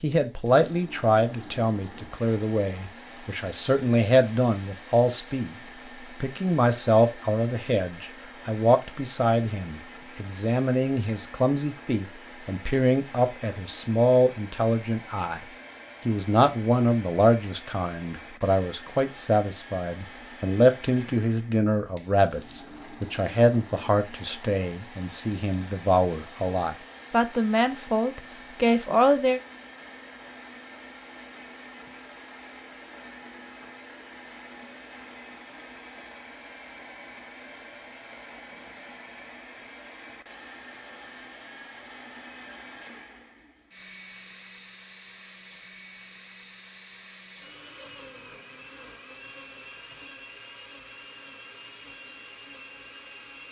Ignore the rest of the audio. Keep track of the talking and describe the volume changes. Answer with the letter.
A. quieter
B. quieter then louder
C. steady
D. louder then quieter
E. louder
C.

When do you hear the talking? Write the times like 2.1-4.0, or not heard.
0.0-15.4, 16.1-29.4.